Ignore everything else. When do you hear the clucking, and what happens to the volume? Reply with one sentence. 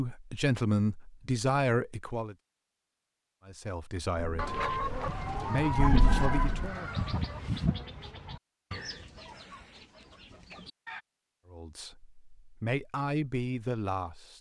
The clucking can be heard from 4.3 to 11.1 s, getting quieter.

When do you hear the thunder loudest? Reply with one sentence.
The loudest moment of the thunder is at 6 seconds.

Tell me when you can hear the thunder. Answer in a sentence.
You can hear the thunder from 4.2 to 6.7 s.